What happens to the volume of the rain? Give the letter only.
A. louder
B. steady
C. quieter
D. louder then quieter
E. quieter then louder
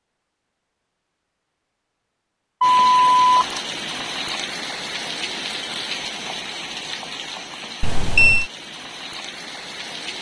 C.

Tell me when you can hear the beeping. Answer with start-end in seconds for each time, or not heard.
2.6-3.5, 7.8-8.4.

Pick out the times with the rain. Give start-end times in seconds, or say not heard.
2.6-10.1.